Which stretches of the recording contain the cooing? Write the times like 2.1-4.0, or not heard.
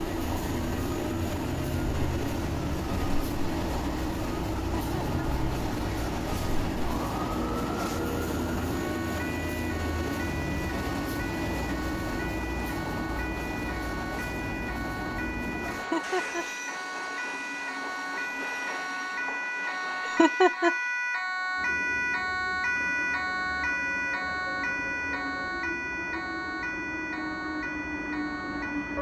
not heard.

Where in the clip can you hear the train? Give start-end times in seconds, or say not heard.
0.0-28.9.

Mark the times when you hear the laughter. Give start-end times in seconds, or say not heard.
4.8-5.2, 15.8-16.4, 20.1-20.7.